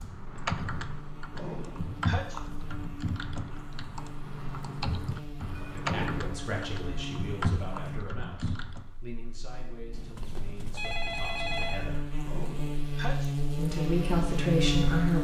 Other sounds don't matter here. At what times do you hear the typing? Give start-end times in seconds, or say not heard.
0.0-8.9.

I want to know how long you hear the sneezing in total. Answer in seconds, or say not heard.
3 s.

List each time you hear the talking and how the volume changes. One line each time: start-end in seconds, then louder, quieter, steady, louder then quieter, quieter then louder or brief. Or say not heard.
5.6-12.1 quieter
13.6-15.2 brief.